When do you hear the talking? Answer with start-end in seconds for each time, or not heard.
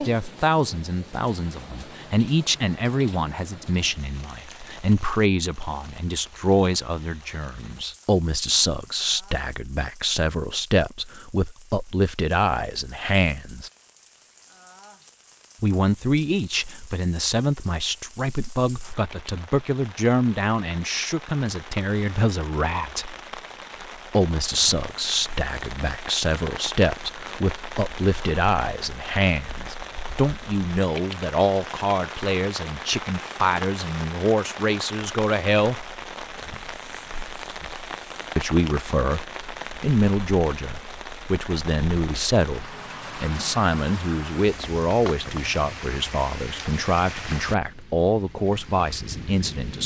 0.0-13.7, 15.6-23.1, 24.1-35.9, 38.4-49.8.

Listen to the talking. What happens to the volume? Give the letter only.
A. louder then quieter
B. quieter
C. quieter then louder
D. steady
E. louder
D.